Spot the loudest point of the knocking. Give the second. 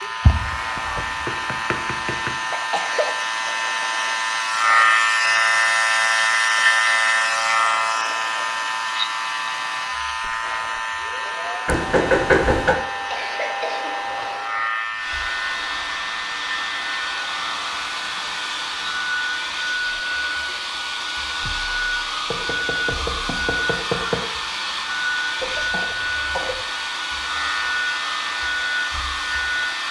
12 s.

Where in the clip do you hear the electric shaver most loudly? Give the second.
5 s.